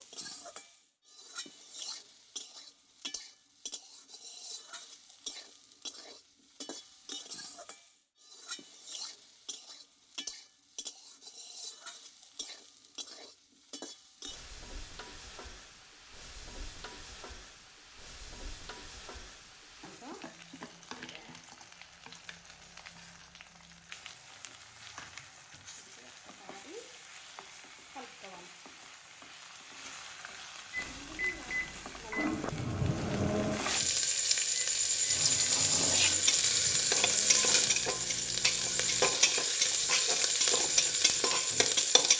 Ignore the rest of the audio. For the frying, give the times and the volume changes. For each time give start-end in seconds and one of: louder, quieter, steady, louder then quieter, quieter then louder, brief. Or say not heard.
0.0-42.1 louder.